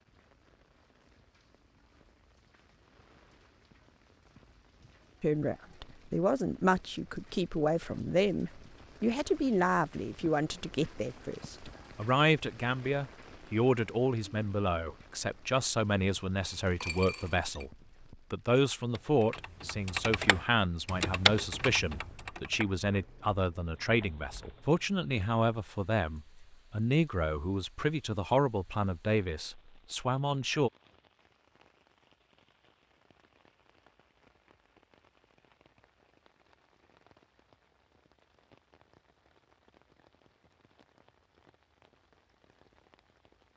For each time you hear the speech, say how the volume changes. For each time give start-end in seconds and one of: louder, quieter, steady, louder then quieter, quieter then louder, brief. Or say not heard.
5.2-30.7 steady.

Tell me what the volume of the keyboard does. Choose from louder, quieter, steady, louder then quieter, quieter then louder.
louder then quieter.